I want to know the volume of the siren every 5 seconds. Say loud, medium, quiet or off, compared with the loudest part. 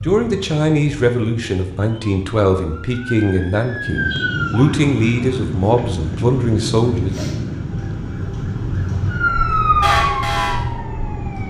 medium, loud, loud.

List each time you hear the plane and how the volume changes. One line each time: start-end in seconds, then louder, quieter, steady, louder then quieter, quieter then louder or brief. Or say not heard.
3.8-11.4 quieter.